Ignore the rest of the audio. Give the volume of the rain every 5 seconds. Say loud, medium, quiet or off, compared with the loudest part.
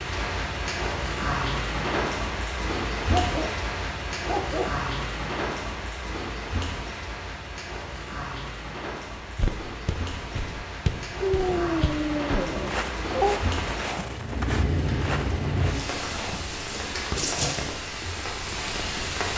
loud, medium, loud, loud.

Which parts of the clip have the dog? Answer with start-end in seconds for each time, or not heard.
3.1-3.6, 4.2-4.8, 11.2-13.4.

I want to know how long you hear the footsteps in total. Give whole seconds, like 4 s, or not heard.
7 s.